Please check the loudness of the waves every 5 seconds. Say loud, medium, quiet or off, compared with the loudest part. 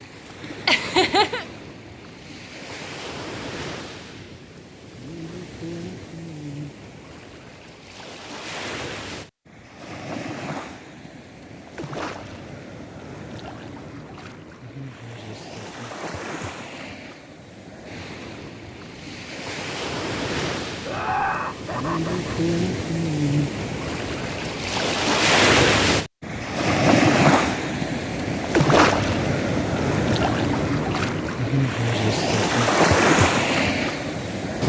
quiet, quiet, quiet, quiet, medium, loud, loud.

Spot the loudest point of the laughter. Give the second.
1 s.